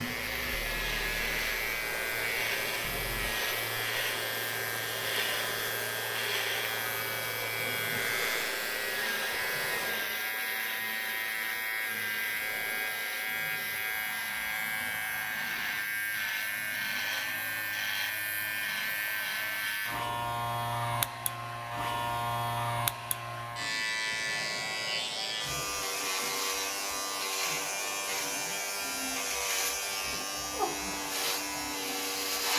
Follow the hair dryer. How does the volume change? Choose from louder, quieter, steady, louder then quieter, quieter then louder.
quieter.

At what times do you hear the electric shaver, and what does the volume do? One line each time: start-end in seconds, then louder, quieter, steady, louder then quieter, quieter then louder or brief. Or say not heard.
0.0-32.5 steady.